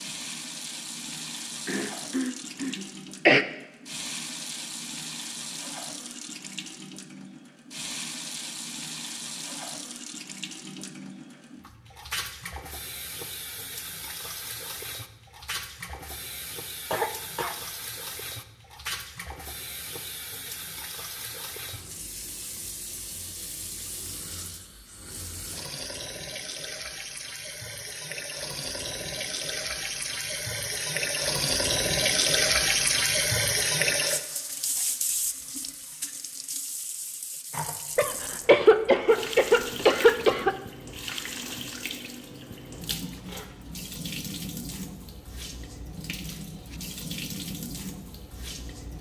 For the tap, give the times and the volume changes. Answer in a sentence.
You can hear the tap from 0.0 to 48.9 s, getting louder then quieter.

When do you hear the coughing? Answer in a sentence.
You can hear the coughing from 1.6 to 3.5 s, from 16.9 to 17.6 s and from 38.0 to 40.5 s.